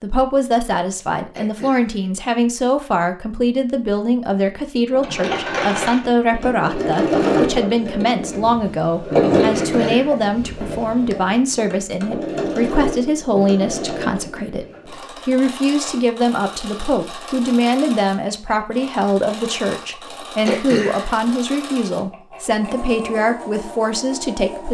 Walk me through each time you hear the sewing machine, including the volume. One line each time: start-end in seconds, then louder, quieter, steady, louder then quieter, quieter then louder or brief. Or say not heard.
4.9-24.7 quieter.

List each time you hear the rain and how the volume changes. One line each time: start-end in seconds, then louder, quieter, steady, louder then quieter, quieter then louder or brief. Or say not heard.
not heard.